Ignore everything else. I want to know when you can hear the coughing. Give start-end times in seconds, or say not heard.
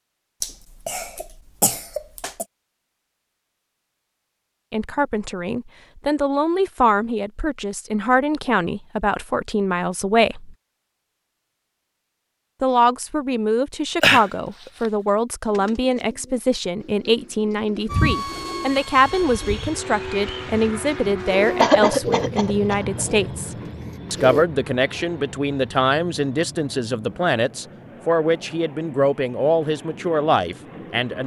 0.4-2.5, 14.0-14.9, 21.6-23.1.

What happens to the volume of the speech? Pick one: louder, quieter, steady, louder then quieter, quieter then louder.
steady.